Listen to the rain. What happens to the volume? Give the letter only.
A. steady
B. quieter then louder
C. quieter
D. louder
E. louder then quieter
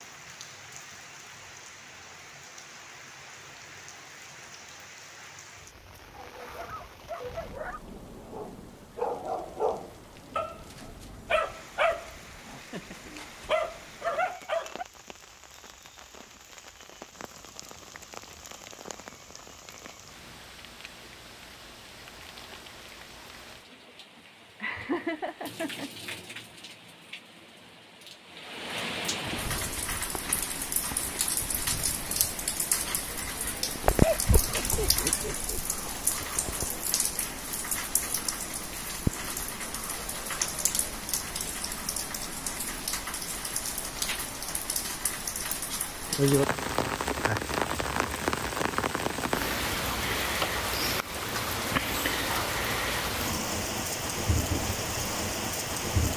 D.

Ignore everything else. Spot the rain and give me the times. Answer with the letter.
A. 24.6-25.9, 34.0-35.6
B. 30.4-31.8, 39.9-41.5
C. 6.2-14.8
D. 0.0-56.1
D.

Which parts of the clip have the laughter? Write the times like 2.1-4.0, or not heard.
24.6-25.9, 34.0-35.6.